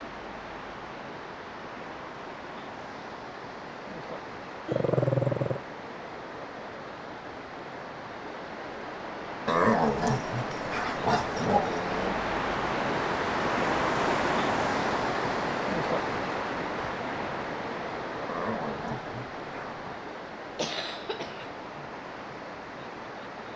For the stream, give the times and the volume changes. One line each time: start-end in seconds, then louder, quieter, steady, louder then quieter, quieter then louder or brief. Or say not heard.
0.0-23.5 louder then quieter.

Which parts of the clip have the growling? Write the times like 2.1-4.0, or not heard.
4.7-5.6, 9.4-12.2, 18.2-20.0.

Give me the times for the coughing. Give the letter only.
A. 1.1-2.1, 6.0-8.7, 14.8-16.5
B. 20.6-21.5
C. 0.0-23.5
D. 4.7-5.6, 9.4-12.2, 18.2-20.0
B.